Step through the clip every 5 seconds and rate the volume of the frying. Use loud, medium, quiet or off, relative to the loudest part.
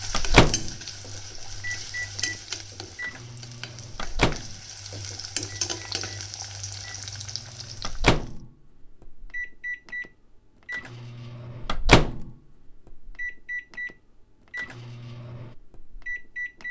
loud, loud, off, off.